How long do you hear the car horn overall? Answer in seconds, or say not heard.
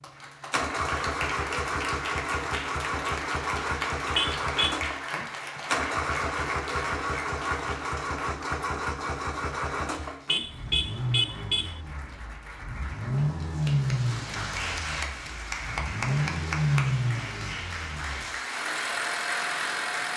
2 s.